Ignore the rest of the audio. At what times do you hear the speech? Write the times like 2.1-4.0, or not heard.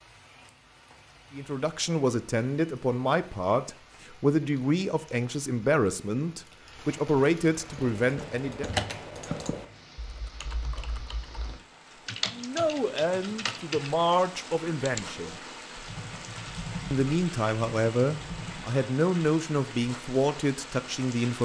1.3-8.7, 12.3-15.3, 16.9-21.4.